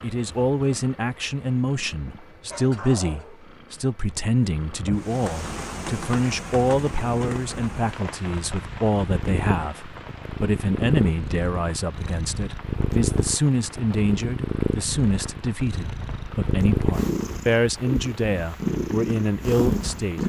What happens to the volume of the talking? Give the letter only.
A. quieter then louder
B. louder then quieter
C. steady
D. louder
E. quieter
C.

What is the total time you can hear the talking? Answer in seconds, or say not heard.
20 s.